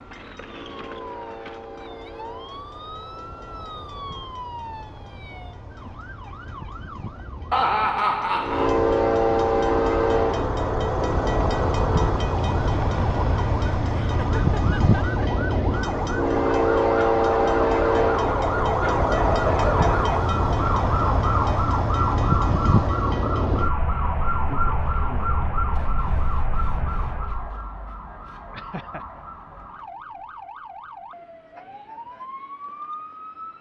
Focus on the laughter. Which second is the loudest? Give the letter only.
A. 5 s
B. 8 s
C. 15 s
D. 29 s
B.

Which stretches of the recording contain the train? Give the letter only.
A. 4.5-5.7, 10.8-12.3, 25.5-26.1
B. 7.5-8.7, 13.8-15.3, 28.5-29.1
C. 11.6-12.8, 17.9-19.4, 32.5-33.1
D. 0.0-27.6
D.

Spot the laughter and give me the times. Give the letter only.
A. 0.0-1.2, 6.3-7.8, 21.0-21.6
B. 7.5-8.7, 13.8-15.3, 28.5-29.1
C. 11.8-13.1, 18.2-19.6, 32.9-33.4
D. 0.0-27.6
B.